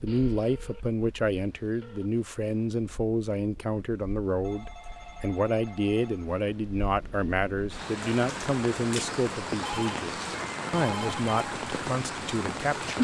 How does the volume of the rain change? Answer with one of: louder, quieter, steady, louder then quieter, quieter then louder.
louder.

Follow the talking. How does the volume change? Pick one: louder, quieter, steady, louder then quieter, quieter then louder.
steady.